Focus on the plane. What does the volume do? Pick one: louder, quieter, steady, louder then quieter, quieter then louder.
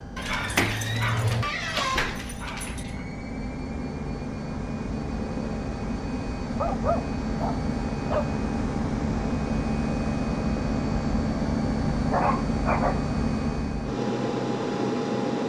louder.